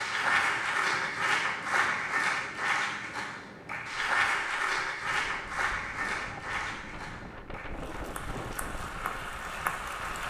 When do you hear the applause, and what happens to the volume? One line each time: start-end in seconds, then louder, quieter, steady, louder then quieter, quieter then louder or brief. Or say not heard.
0.0-10.2 quieter.